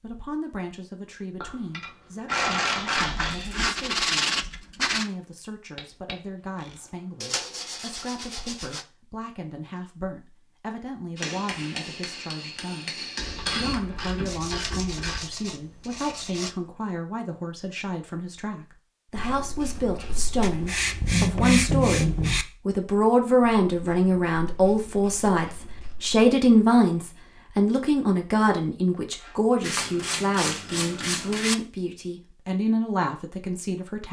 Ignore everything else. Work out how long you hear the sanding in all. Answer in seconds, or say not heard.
10 s.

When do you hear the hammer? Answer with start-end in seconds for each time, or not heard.
11.2-13.8.